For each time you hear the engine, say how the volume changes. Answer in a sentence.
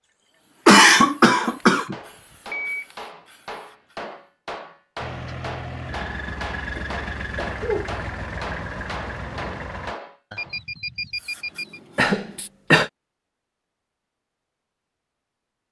The engine can be heard from 5.0 to 9.9 s, at a steady volume.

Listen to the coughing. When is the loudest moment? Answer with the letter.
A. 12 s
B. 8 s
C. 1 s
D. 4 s
C.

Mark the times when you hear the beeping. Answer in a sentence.
The beeping can be heard from 2.5 to 3.0 s and from 10.3 to 11.8 s.